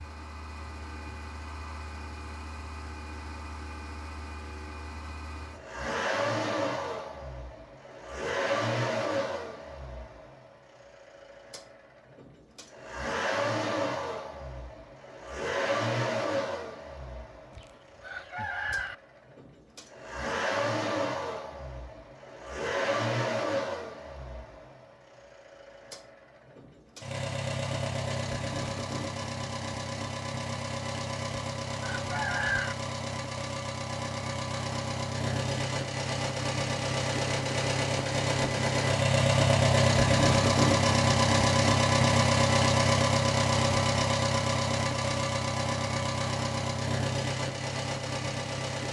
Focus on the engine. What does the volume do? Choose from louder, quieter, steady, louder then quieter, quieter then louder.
louder.